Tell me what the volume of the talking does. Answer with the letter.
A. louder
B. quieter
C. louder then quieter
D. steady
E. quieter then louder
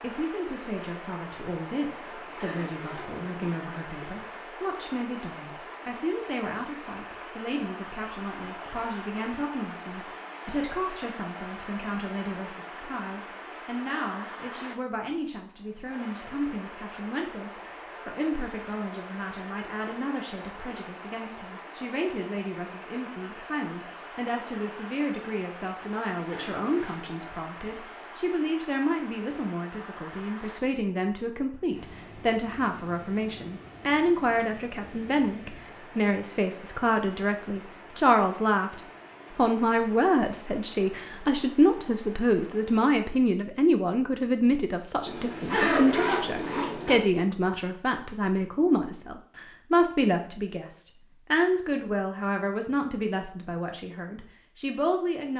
A.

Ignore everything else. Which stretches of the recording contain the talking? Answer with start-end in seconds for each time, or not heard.
0.0-55.3.